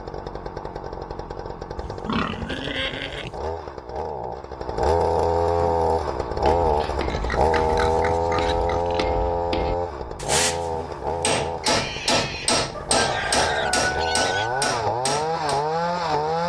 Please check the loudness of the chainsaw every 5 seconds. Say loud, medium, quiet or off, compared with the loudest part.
medium, loud, medium, loud.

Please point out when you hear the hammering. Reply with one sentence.
The hammering can be heard from 5.5 to 15.7 s.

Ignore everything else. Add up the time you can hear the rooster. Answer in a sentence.
The rooster can be heard for 2 seconds in total.